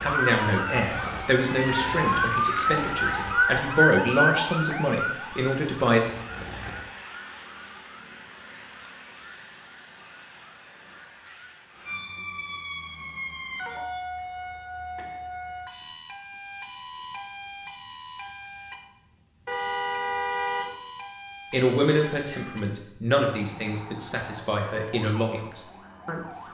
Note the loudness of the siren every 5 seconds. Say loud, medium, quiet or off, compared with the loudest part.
loud, quiet, quiet, quiet, quiet, quiet.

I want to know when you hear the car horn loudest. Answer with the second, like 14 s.
20 s.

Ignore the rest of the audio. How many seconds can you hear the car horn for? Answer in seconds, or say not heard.
2 s.